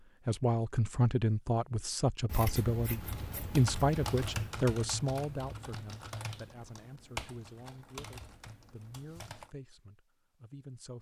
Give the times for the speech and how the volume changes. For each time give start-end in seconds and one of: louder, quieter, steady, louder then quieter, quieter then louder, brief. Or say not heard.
0.2-10.9 quieter.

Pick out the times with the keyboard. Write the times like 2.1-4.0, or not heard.
3.0-9.5.